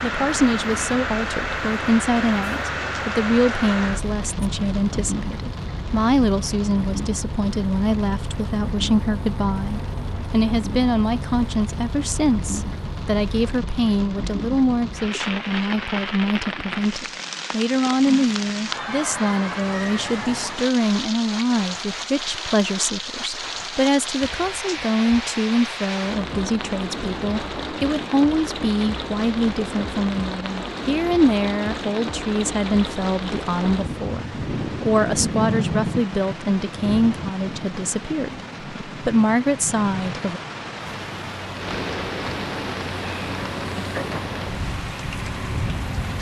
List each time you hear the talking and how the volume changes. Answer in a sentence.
You can hear the talking from 0.0 to 40.4 s, at a steady volume.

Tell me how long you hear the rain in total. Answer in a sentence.
The rain can be heard for 46 seconds in total.